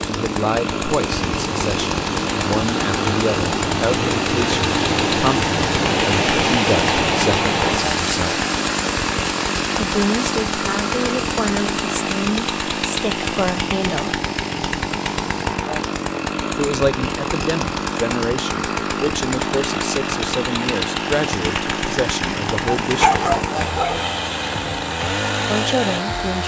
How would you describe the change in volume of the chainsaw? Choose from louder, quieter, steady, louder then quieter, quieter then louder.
steady.